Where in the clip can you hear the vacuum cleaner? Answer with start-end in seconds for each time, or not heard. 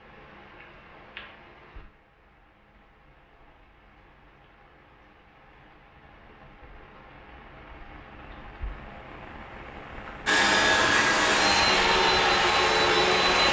10.2-13.4.